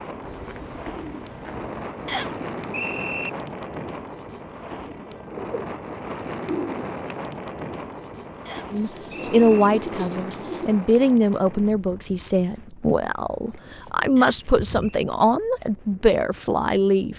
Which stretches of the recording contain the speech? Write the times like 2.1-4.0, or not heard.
8.7-17.1.